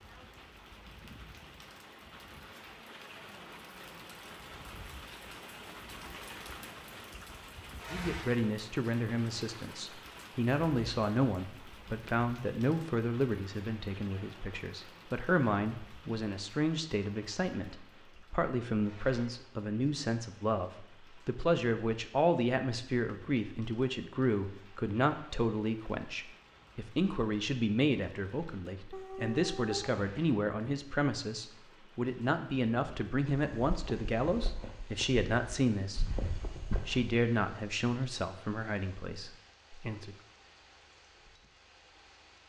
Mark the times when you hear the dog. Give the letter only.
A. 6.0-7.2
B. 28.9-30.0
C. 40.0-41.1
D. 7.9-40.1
B.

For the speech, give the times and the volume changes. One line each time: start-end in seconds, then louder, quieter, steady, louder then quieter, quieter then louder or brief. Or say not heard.
7.9-40.1 steady.